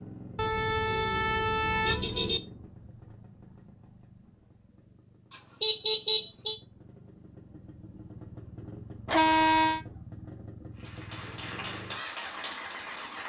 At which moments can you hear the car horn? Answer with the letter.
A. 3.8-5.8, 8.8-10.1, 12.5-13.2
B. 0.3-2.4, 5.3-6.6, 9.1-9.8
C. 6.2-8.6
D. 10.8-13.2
B.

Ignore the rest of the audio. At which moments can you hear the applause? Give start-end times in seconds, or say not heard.
10.8-13.2.